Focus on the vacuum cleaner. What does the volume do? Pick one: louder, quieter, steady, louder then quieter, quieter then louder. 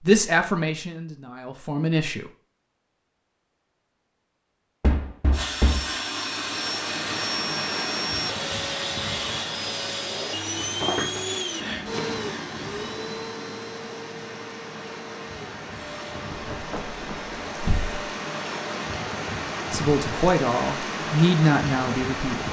quieter.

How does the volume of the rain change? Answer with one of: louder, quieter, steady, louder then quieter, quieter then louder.
quieter then louder.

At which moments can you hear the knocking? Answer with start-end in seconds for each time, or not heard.
4.8-5.8, 10.6-11.2, 16.3-17.9.